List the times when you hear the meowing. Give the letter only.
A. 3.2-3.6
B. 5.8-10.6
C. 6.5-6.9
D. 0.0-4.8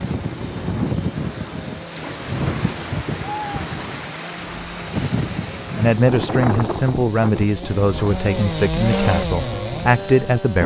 A.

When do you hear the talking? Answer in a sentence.
The talking can be heard from 5.8 to 10.6 s.